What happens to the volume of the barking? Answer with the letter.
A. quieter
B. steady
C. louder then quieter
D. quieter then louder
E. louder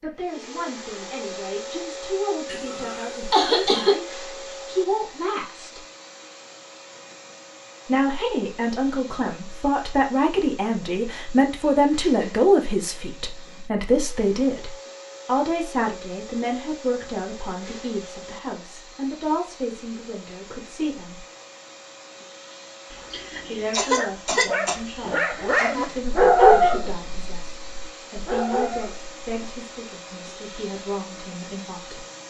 C.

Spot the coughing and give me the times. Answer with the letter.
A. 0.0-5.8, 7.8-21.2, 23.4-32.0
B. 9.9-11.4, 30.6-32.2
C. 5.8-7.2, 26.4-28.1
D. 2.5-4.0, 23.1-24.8
D.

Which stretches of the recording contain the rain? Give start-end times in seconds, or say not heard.
not heard.